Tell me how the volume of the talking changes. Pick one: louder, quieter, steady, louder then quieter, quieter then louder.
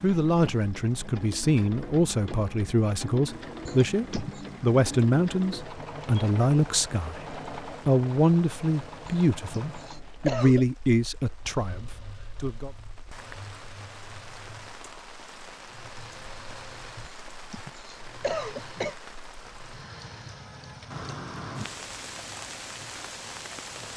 steady.